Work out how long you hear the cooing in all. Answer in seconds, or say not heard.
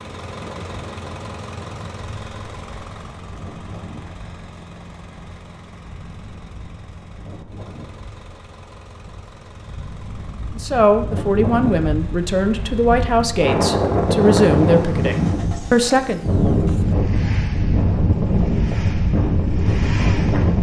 not heard.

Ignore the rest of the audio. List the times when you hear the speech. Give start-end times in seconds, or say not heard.
10.6-16.2.